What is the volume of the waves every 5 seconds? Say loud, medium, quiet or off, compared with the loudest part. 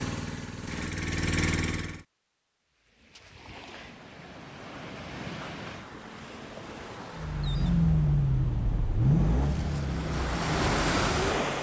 quiet, quiet, loud.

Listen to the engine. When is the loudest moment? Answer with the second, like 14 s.
8 s.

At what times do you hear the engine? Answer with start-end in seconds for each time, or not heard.
0.0-2.0, 7.1-11.5.